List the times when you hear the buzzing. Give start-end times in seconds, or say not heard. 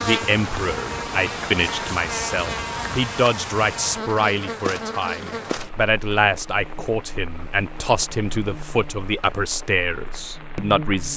0.0-11.1.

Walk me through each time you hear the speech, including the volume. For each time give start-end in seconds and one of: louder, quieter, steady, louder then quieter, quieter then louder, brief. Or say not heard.
0.0-11.1 steady.